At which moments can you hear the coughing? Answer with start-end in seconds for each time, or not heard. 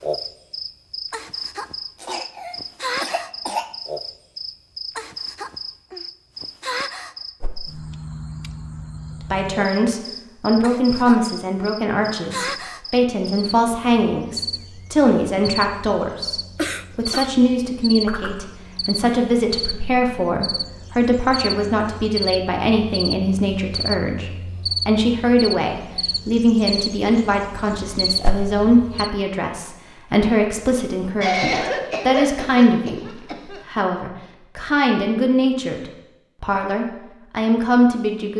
2.0-3.8, 16.6-17.4, 31.2-33.8.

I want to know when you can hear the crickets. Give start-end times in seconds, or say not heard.
0.0-29.1.